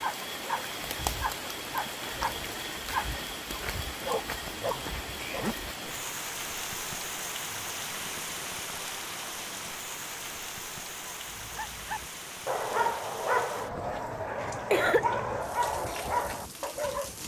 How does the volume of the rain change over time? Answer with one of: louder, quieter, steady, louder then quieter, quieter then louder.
quieter.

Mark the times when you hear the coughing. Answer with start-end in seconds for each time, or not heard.
14.4-15.1.